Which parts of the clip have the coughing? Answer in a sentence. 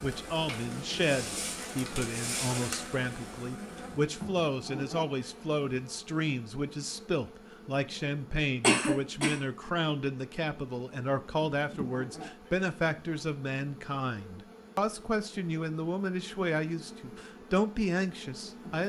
You can hear the coughing from 8.6 to 9.3 s.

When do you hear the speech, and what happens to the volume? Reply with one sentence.
You can hear the speech from 0.0 to 18.8 s, at a steady volume.